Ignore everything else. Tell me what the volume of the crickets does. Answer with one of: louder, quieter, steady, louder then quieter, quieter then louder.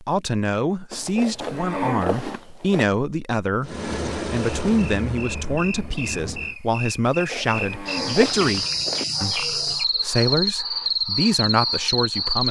louder.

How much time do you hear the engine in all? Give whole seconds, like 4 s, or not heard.
3 s.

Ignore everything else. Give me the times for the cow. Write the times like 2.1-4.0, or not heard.
0.9-2.9, 7.0-9.1.